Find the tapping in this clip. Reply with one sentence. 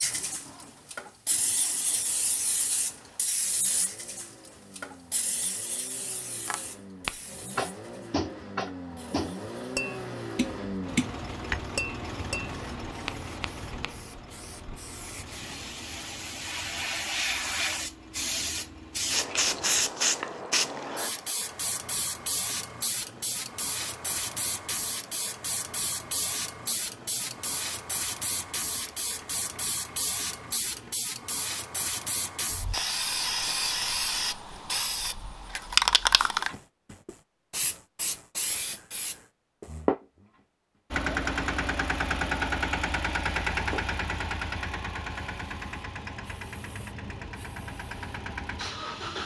The tapping can be heard from 6.3 to 13.9 s.